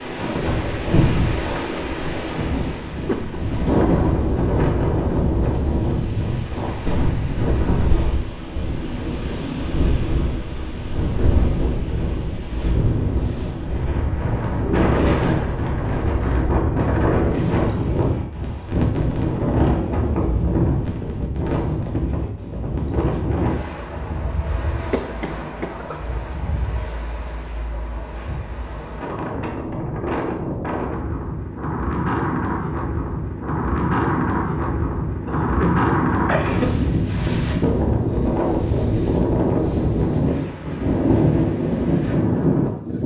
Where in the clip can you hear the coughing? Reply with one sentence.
The coughing can be heard from 3.0 to 3.8 s, from 24.9 to 26.0 s and from 35.2 to 36.8 s.